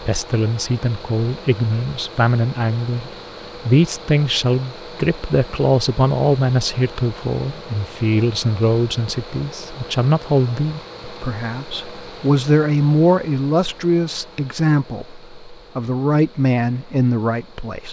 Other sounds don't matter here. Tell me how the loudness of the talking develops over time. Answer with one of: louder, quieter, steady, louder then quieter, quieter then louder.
steady.